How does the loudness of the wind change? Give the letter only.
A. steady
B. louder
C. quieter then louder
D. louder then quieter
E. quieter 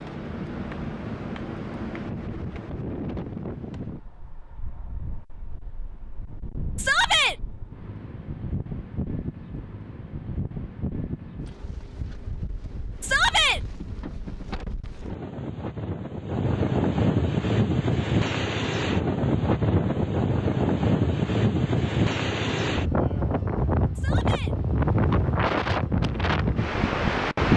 B.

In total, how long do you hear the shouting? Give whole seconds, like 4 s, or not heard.
2 s.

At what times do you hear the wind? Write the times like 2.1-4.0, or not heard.
0.0-27.5.